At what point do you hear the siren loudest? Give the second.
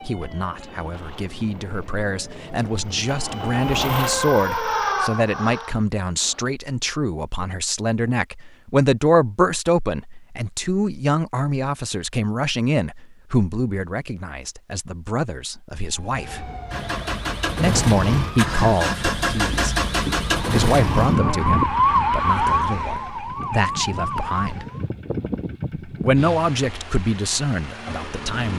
22 s.